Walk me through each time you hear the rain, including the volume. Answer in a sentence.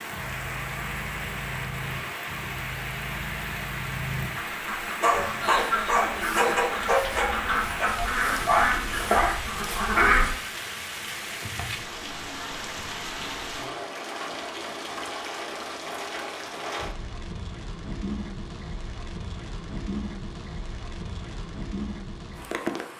You can hear the rain from 0.0 to 22.9 s, at a steady volume.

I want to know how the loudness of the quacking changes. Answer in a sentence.
The loudness of the quacking goes up.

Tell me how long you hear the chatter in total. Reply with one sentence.
The chatter can't be heard in this clip.